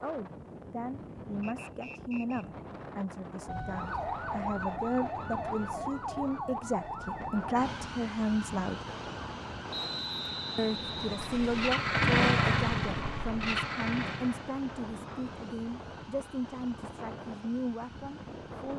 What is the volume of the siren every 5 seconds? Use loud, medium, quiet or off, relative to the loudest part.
loud, loud, medium, quiet.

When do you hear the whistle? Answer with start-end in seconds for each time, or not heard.
1.4-2.5, 9.7-11.7.